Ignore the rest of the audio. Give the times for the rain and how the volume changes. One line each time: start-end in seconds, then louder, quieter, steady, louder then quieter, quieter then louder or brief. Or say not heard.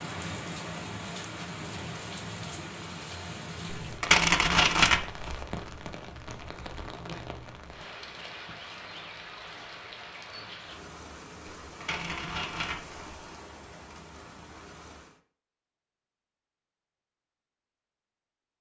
0.0-15.2 quieter.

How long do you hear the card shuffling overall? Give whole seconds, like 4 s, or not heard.
3 s.